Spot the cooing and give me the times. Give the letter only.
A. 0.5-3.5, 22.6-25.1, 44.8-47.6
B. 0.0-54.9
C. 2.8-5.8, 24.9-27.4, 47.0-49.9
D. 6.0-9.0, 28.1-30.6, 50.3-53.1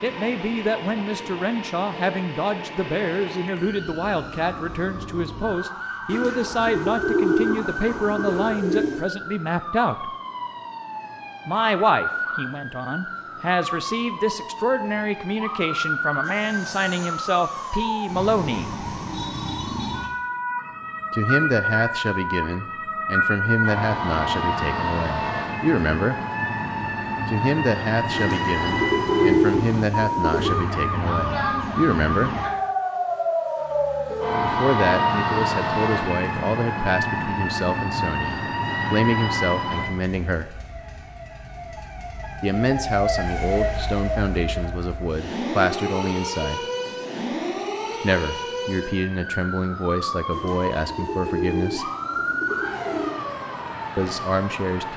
D.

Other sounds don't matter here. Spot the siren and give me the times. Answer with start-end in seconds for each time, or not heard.
0.0-54.9.